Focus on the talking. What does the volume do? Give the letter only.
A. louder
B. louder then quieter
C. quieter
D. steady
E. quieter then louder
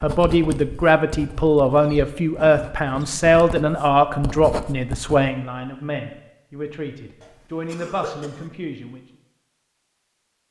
C.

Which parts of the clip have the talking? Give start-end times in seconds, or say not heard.
0.0-9.0.